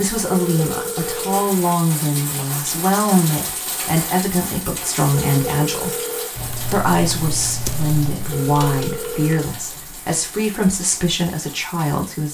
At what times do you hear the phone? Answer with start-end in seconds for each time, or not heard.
0.2-1.4, 5.1-6.3, 8.3-9.5.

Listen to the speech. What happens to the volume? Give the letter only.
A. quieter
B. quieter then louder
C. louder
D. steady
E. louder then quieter
D.